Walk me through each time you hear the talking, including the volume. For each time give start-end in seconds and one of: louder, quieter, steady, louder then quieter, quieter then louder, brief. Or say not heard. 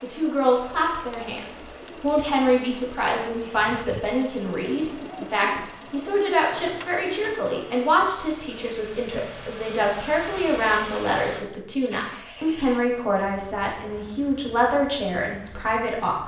0.0-16.2 steady.